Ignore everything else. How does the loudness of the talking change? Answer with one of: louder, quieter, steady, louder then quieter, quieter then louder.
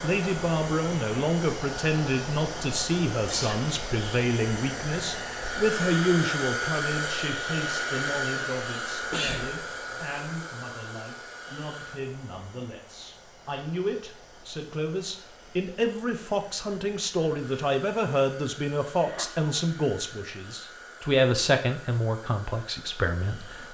quieter then louder.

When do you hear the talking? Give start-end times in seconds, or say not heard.
0.0-23.6.